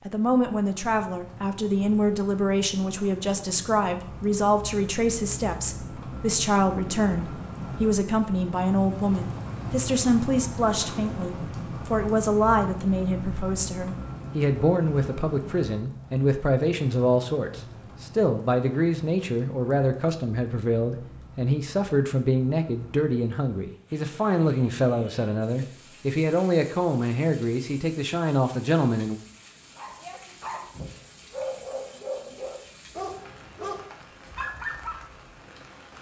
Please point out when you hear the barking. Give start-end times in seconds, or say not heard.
29.8-35.0.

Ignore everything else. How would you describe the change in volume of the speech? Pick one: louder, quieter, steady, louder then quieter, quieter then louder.
steady.